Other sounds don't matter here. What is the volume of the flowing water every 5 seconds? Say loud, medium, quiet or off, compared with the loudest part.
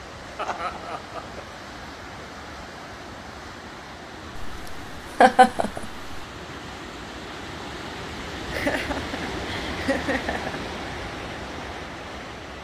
medium, loud, loud.